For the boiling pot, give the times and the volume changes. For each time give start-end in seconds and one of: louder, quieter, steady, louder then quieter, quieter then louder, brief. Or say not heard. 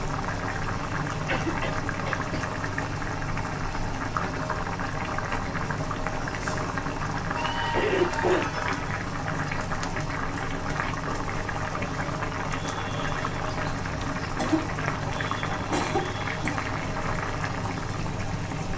0.0-18.7 steady.